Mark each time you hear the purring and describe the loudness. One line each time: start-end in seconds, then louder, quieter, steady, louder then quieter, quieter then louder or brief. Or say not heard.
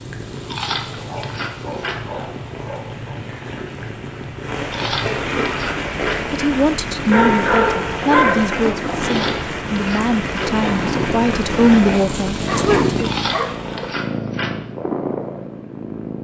0.0-16.1 louder.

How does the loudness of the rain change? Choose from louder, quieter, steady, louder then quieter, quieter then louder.
louder.